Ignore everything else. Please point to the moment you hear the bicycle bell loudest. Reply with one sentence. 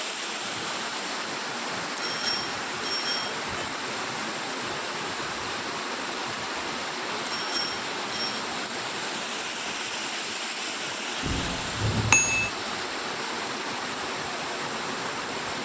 The loudest moment of the bicycle bell is at 12 seconds.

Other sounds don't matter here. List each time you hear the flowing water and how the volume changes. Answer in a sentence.
You can hear the flowing water from 0.0 to 15.6 s, at a steady volume.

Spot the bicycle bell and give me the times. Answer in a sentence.
The bicycle bell can be heard from 1.9 to 3.4 s, from 7.2 to 8.4 s and from 11.2 to 12.5 s.